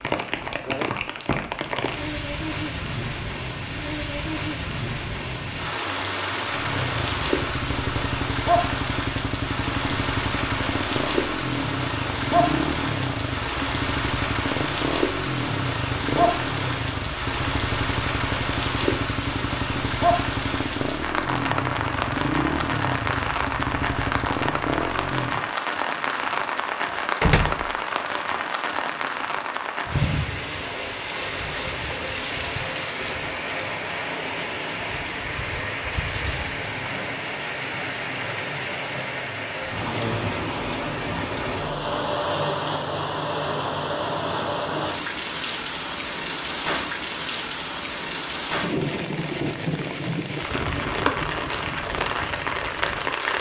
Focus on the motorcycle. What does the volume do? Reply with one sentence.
The loudness of the motorcycle stays about the same.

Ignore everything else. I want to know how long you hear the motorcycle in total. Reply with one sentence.
The motorcycle can be heard for 19 seconds in total.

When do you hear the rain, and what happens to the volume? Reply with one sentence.
You can hear the rain from 0.0 to 53.3 s, at a steady volume.